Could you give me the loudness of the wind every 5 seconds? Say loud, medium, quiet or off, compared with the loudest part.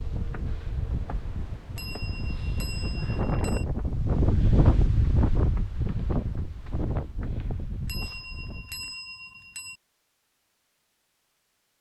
loud, loud, off.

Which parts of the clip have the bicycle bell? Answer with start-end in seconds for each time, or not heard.
1.8-3.6, 7.8-9.8.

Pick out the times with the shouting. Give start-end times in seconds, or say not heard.
not heard.